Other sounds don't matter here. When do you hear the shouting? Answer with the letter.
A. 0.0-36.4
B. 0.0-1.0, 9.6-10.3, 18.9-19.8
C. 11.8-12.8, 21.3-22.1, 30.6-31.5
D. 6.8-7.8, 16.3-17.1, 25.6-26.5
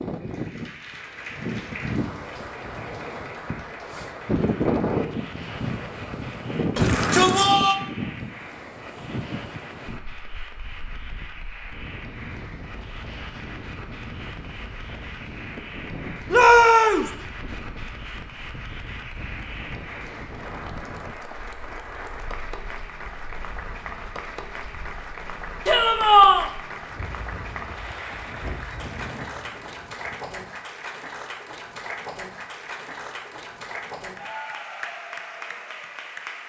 D.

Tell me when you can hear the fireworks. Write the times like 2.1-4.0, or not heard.
not heard.